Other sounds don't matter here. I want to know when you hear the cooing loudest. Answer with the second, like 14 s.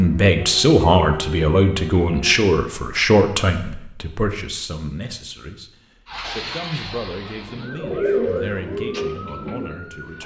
8 s.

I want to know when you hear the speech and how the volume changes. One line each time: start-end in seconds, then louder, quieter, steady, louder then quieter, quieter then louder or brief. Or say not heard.
0.0-10.2 quieter.